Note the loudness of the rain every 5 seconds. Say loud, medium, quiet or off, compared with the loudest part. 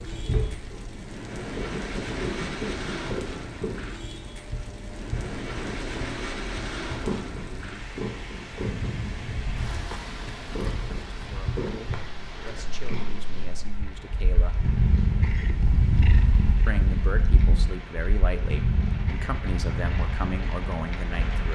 loud, loud, medium, medium, loud.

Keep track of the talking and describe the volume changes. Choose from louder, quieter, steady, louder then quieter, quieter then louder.
louder.